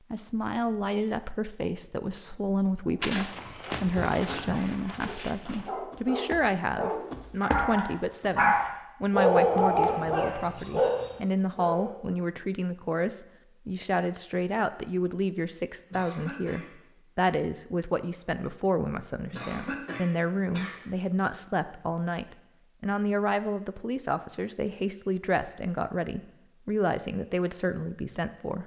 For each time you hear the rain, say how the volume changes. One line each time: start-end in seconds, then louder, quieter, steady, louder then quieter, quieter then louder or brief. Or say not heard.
not heard.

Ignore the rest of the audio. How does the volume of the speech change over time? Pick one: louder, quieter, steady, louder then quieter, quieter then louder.
steady.